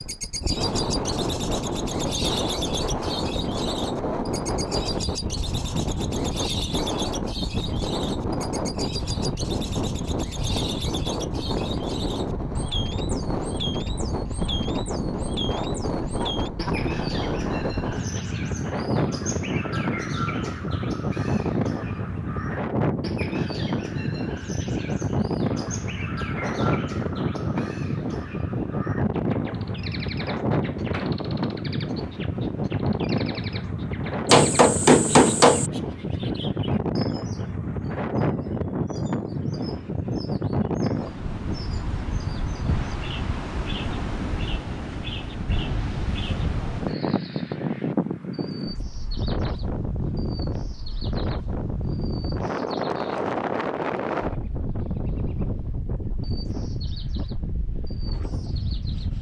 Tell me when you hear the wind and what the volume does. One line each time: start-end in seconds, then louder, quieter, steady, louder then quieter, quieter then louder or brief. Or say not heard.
0.0-59.1 steady.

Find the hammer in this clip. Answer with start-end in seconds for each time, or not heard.
34.2-35.7.